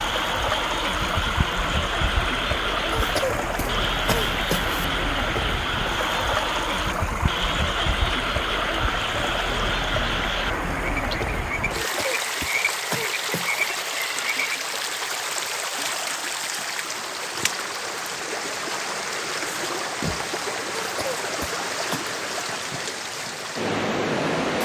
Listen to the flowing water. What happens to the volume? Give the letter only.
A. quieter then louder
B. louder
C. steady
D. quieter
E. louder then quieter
C.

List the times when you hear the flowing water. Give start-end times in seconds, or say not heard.
0.0-24.5.